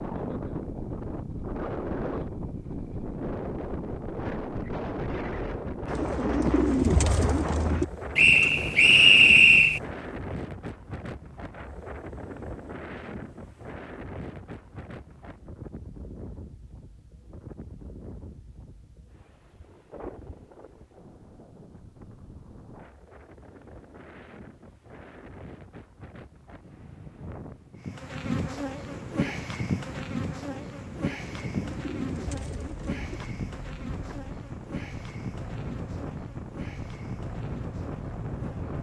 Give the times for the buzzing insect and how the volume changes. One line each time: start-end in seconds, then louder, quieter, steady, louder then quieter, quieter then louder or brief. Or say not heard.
27.8-38.7 quieter.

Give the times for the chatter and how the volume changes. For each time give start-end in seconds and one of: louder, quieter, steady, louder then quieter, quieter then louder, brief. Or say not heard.
not heard.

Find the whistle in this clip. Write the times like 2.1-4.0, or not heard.
8.2-9.8.